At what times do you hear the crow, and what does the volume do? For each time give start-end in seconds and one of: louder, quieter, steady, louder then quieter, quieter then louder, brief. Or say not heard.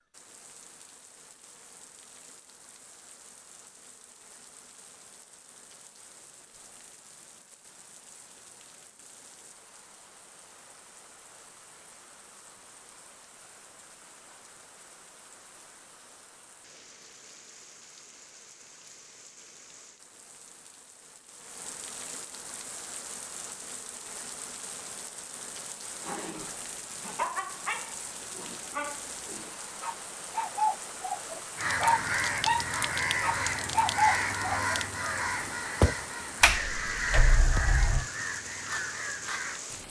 31.6-39.6 quieter.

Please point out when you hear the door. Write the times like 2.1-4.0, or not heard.
36.4-38.0.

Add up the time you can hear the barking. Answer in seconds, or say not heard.
9 s.